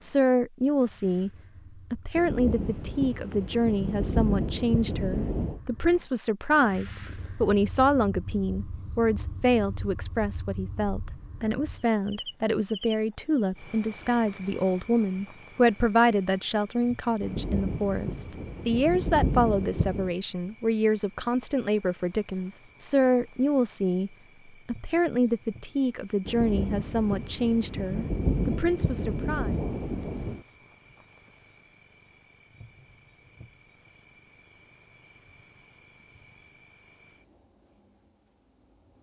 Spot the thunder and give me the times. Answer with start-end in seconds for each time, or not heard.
2.1-5.6, 17.2-20.1, 26.2-30.4.